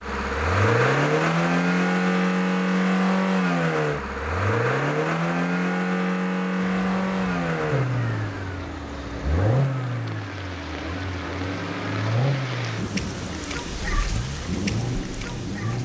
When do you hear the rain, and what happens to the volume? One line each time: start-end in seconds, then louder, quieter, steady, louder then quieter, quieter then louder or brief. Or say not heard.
6.7-15.8 louder.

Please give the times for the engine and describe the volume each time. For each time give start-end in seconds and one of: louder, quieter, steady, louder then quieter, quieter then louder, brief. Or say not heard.
0.0-15.8 quieter.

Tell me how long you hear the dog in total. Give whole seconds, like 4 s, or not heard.
not heard.